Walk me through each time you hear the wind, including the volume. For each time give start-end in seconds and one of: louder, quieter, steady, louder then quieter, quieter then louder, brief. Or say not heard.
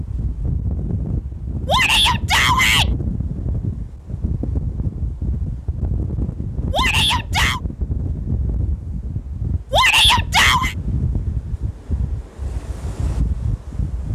0.0-14.1 steady.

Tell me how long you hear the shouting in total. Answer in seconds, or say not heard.
3 s.